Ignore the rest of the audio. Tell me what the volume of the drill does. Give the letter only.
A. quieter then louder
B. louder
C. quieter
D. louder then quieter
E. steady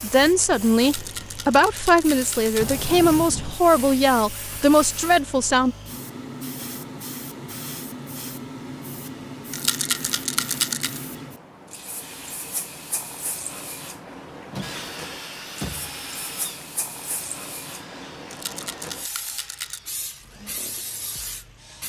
C.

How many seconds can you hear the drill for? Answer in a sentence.
You can hear the drill for 7 seconds altogether.